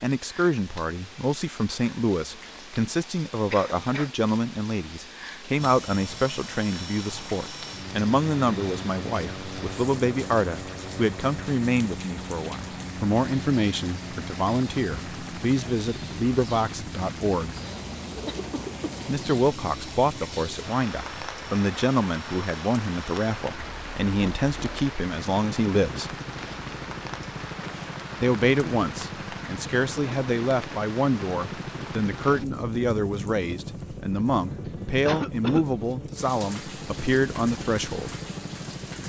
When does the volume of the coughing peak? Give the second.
35 s.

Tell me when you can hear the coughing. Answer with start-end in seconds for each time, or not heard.
3.5-4.1, 18.2-18.8, 34.6-35.6.